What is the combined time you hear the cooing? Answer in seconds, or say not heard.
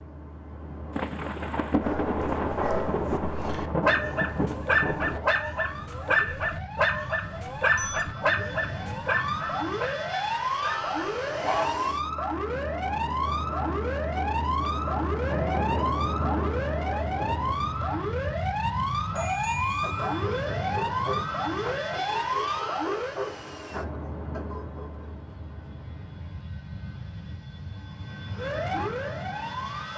not heard.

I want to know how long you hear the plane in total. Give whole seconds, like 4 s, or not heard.
30 s.